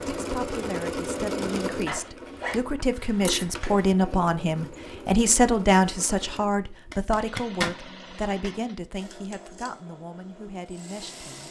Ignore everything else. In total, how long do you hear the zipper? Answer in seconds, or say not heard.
3 s.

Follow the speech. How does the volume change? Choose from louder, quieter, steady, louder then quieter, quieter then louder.
louder then quieter.